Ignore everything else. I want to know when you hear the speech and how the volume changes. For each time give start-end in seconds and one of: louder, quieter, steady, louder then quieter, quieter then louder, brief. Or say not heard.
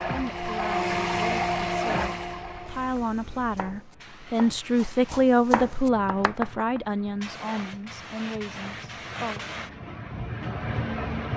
0.1-9.4 louder then quieter.